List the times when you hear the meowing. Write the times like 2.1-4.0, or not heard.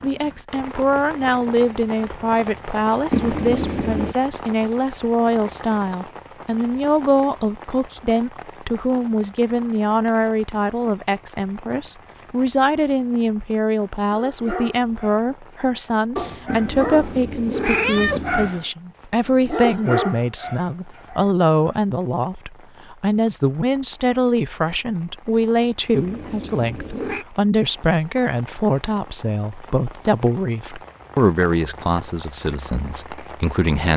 3.1-4.2, 16.4-18.6, 25.9-27.2.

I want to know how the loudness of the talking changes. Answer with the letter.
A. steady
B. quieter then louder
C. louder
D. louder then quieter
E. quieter
A.